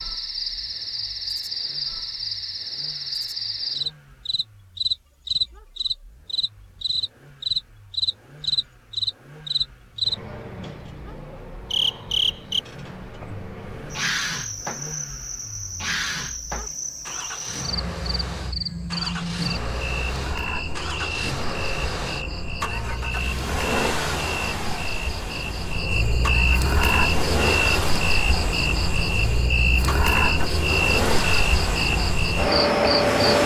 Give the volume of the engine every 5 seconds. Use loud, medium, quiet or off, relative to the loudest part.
quiet, quiet, quiet, medium, loud, loud, loud.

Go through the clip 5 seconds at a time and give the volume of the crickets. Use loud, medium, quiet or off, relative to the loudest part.
medium, loud, medium, medium, medium, loud, loud.